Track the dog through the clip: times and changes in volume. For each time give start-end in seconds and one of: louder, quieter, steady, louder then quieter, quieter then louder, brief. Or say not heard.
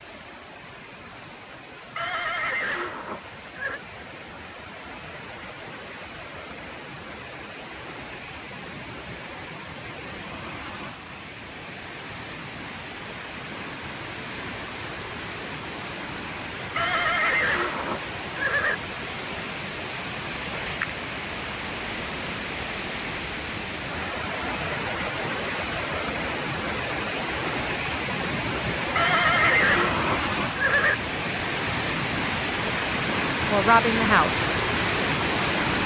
not heard.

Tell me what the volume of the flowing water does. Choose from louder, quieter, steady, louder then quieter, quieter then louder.
louder.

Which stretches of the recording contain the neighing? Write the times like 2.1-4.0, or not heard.
1.9-3.8, 16.8-18.8, 28.9-30.9.